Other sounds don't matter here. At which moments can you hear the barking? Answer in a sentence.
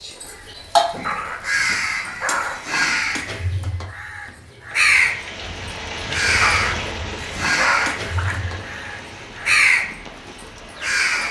You can hear the barking from 1.0 to 3.0 s and from 6.4 to 8.4 s.